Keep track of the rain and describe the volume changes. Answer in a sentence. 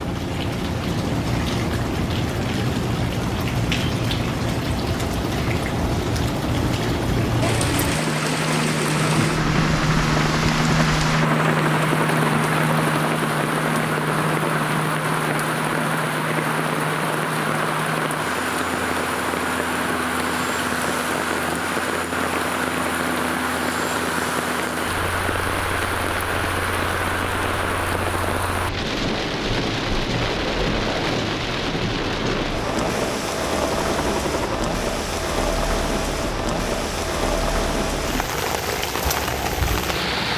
The loudness of the rain stays about the same.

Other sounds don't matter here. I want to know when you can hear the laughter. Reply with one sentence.
You can't hear the laughter here.